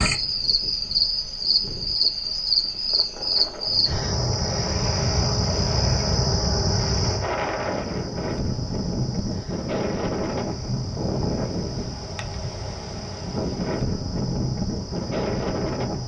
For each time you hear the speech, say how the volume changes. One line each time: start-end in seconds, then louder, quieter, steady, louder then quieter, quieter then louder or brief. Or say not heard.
not heard.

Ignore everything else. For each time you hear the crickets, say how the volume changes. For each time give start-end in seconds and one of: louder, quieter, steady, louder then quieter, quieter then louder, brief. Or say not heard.
0.0-16.0 quieter.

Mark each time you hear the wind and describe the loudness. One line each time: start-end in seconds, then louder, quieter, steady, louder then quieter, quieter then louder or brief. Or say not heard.
0.0-16.0 louder.